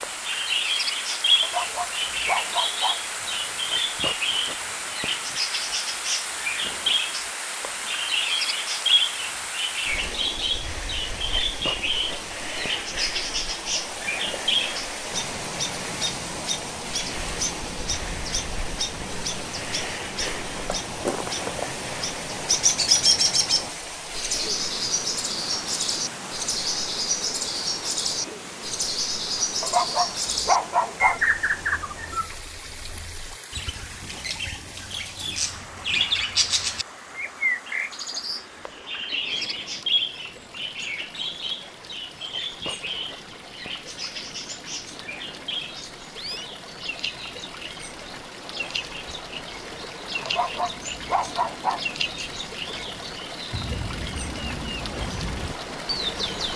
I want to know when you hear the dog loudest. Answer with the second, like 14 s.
31 s.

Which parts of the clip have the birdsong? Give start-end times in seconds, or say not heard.
0.0-56.5.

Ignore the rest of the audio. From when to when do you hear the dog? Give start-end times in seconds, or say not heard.
1.4-3.0, 29.6-31.2, 50.2-51.8.